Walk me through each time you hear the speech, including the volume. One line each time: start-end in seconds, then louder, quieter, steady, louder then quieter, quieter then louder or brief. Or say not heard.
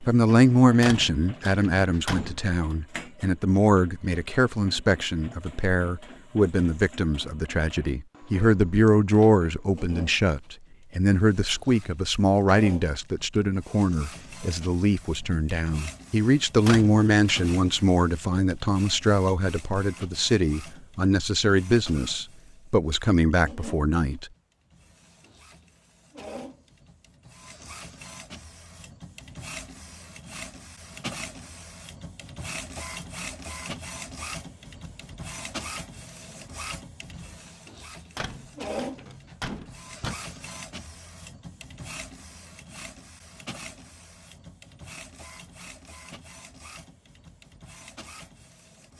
0.0-24.3 steady.